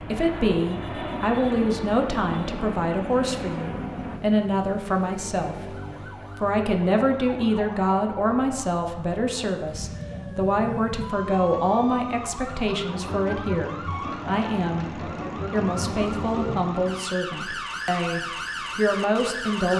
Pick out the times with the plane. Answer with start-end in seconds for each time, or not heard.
0.0-4.2, 14.0-16.1.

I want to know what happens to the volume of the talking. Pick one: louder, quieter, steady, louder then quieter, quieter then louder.
steady.